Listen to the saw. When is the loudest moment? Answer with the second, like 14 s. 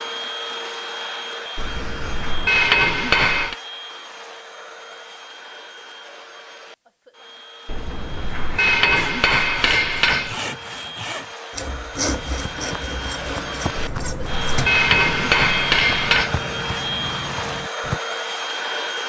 12 s.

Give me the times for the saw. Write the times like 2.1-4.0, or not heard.
8.1-14.8.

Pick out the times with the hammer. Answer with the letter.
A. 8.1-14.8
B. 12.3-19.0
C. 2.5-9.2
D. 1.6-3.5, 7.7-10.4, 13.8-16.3
D.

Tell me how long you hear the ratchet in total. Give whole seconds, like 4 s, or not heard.
not heard.